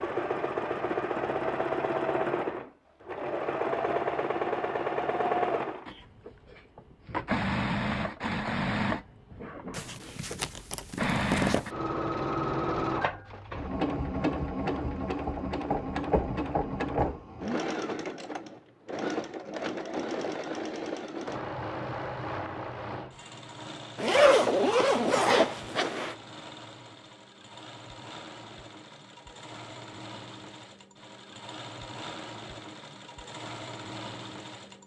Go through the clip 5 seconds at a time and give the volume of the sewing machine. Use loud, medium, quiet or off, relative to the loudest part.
loud, loud, loud, loud, medium, quiet, quiet.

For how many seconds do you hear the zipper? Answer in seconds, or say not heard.
4 s.